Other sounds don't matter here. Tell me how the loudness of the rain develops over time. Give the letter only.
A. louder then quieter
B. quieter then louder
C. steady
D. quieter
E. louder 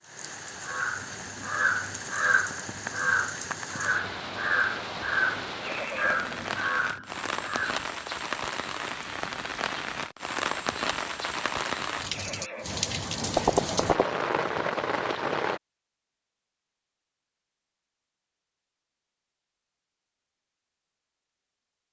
E.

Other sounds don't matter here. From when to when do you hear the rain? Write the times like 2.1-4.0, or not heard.
0.0-15.6.